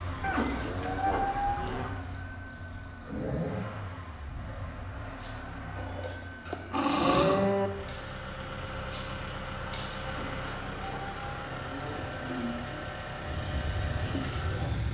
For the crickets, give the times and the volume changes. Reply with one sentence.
You can hear the crickets from 0.0 to 14.8 s, getting quieter then louder.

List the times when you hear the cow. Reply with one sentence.
The cow can be heard from 0.2 to 1.9 s, from 5.8 to 7.7 s and from 10.0 to 12.8 s.